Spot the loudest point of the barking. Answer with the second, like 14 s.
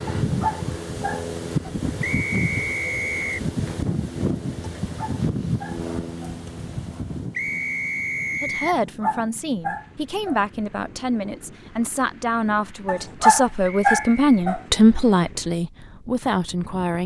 13 s.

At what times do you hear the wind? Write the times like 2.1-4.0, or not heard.
0.0-17.0.